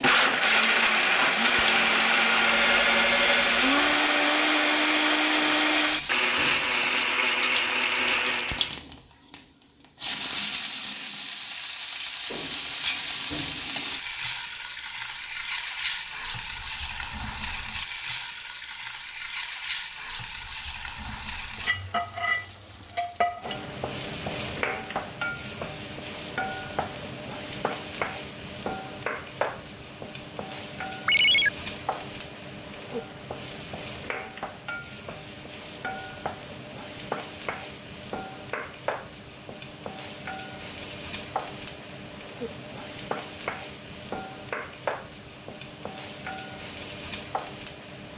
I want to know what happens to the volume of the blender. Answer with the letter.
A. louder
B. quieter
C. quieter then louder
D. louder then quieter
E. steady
E.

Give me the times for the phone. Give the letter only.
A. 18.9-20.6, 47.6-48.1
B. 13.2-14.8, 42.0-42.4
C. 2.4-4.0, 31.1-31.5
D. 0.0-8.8
C.